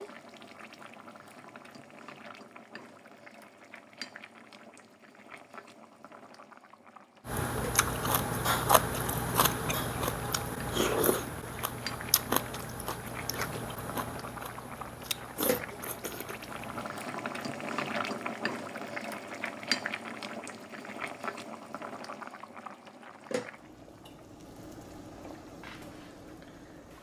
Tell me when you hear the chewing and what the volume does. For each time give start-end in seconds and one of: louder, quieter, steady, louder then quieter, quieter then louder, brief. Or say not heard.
7.2-16.9 quieter.